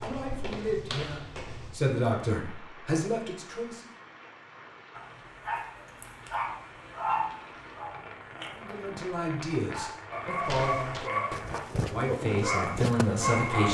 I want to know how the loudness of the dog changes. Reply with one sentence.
The loudness of the dog goes down, then up.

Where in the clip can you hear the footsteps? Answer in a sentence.
You can hear the footsteps from 0.0 to 1.8 s and from 10.4 to 13.6 s.